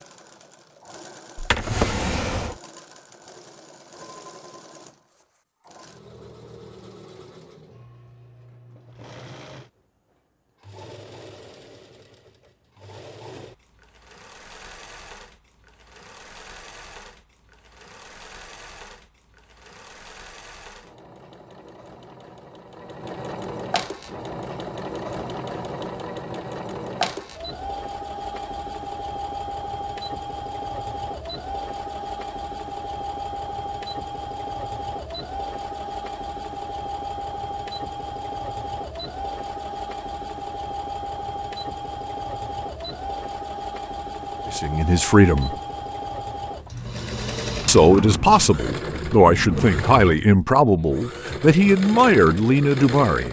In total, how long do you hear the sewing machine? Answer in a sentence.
The sewing machine can be heard for 53 seconds in total.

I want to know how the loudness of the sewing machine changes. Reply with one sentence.
The volume of the sewing machine goes up.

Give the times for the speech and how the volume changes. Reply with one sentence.
You can hear the speech briefly from 44.5 to 45.5 s; and from 47.6 to 53.2 s, at a steady volume.